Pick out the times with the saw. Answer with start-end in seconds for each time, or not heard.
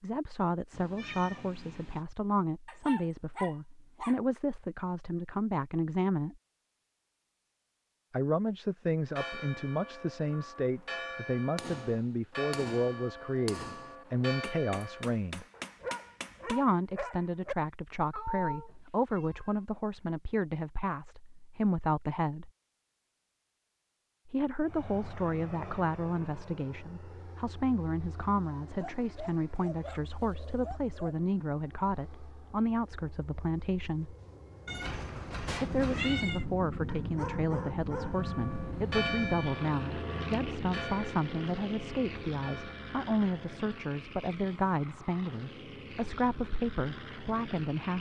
not heard.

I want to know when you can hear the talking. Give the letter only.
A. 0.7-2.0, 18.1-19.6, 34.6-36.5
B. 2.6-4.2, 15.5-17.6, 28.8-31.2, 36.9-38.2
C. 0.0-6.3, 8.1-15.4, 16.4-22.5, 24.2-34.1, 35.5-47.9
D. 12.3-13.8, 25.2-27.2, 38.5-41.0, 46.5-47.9
C.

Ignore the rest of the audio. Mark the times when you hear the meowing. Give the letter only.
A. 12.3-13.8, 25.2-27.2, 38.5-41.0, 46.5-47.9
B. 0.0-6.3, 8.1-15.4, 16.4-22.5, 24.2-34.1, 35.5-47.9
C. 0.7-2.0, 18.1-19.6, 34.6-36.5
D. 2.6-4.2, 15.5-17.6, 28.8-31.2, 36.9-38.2
C.